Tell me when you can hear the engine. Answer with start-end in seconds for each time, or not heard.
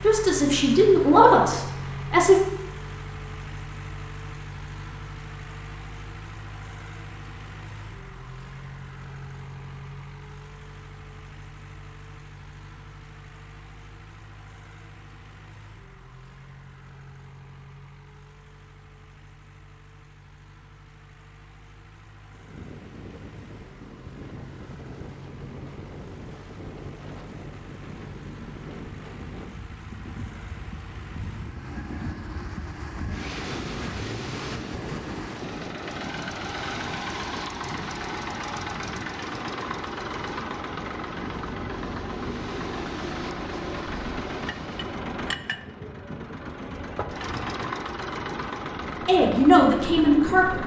0.0-50.6.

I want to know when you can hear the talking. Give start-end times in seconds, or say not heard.
0.0-2.4, 49.0-50.6.